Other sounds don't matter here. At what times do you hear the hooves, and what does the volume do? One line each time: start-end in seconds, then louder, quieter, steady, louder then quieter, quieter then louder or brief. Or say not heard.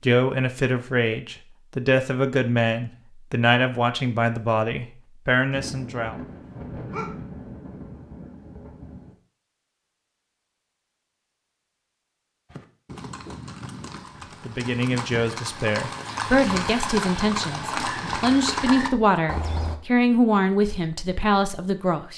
12.5-19.8 louder.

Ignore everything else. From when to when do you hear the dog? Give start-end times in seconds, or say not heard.
6.5-7.2.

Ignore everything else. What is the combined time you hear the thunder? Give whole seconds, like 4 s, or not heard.
4 s.